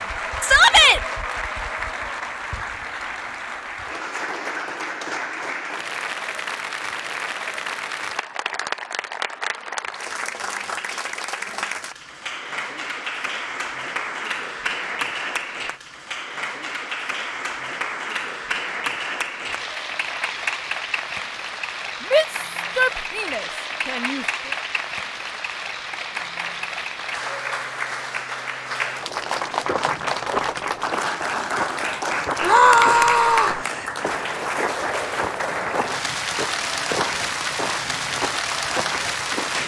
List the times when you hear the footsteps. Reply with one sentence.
You can hear the footsteps from 29.6 to 39.6 s.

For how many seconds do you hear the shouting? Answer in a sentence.
The shouting can be heard for 4 seconds in total.